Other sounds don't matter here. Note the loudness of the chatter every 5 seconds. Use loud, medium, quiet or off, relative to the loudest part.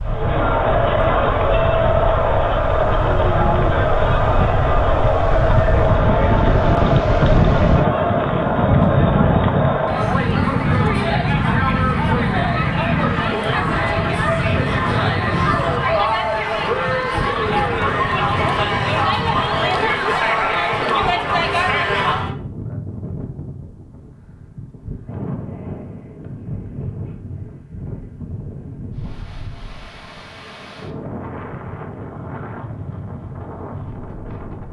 loud, loud, loud, loud, loud, off, off.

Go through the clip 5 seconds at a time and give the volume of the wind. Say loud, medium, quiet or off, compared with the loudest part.
medium, loud, loud, medium, quiet, quiet, quiet.